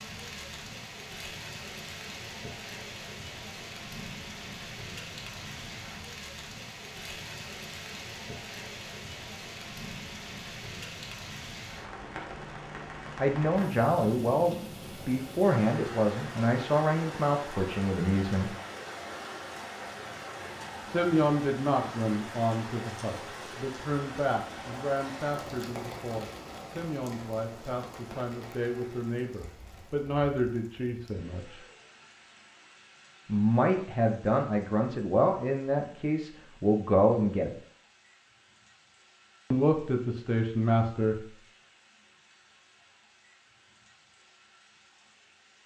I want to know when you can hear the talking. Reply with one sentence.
You can hear the talking from 13.2 to 18.5 s, from 20.9 to 31.6 s, from 33.2 to 37.5 s and from 39.5 to 41.2 s.